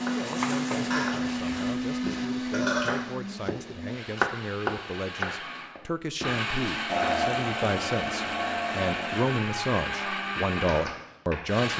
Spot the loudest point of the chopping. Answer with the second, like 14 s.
4 s.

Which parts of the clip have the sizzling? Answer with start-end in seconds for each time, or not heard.
0.0-1.8.